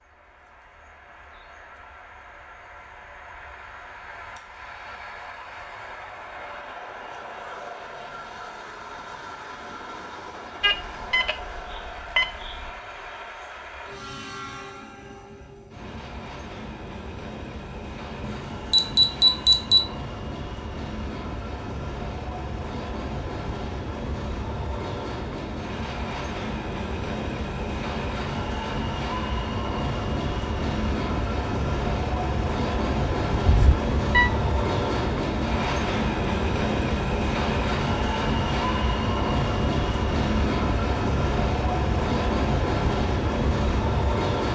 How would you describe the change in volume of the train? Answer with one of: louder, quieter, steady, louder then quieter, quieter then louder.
louder.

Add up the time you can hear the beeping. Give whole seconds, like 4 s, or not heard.
5 s.